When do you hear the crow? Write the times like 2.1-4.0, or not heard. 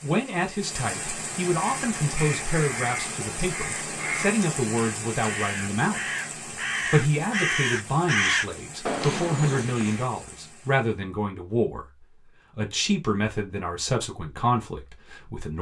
1.5-10.1.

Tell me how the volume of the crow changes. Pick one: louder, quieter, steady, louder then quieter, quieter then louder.
louder.